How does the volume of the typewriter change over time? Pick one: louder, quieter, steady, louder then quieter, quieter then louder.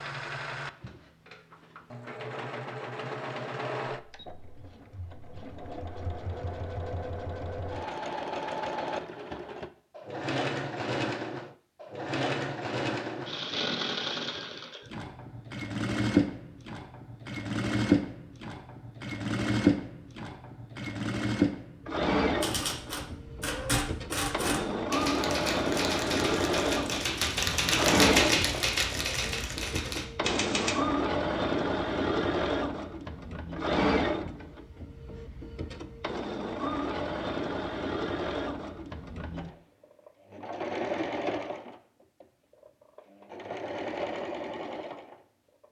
louder then quieter.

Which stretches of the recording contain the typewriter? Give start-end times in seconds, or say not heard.
22.4-30.8.